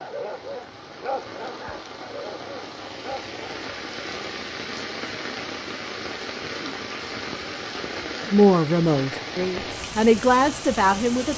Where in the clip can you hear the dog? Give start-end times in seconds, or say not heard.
0.0-4.0.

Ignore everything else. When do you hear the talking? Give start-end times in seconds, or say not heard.
8.2-11.3.